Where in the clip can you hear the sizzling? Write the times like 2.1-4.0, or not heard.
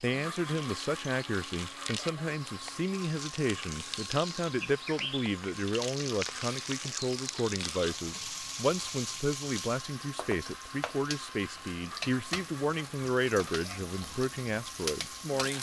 0.0-15.5.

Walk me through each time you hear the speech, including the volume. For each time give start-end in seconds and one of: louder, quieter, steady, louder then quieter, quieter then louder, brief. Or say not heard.
0.0-15.5 steady.